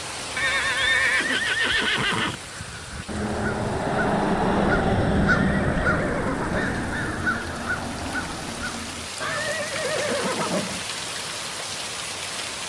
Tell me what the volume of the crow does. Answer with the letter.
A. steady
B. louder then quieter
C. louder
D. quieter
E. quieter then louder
B.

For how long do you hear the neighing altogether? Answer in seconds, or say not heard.
5 s.